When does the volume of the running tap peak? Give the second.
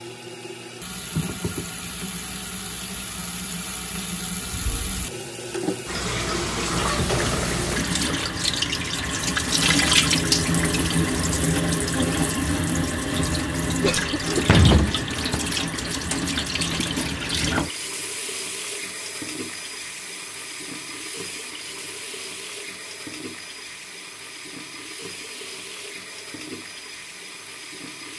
10 s.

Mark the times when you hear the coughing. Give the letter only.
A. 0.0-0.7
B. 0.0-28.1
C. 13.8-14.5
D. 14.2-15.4
C.